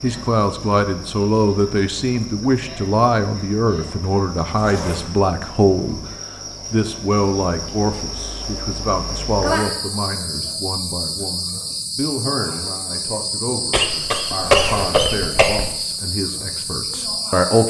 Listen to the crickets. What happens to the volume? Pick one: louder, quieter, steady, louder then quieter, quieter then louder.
louder.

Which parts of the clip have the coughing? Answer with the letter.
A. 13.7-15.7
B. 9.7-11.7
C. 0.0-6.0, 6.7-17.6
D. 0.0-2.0
A.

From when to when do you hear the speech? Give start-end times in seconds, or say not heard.
0.0-6.0, 6.7-17.6.